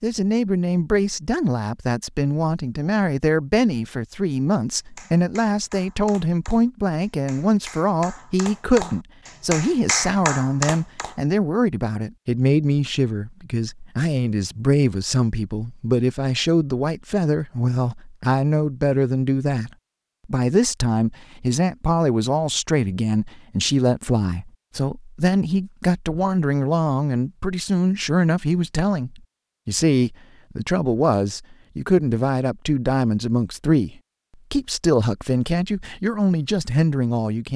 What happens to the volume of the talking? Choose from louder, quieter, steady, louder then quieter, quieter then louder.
steady.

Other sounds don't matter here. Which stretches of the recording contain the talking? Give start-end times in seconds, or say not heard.
0.0-37.5.